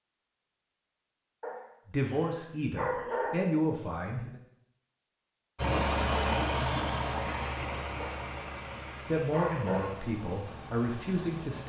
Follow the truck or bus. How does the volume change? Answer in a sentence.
The volume of the truck or bus goes down.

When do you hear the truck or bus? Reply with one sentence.
You can hear the truck or bus from 5.5 to 11.6 s.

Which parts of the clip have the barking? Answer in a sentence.
You can hear the barking from 1.4 to 3.4 s and from 8.0 to 9.8 s.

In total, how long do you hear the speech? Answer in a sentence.
You can hear the speech for 5 seconds altogether.